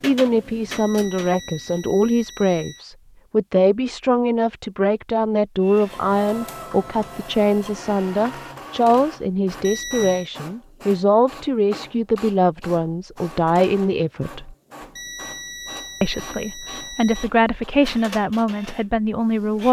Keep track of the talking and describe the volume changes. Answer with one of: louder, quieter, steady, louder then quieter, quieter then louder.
steady.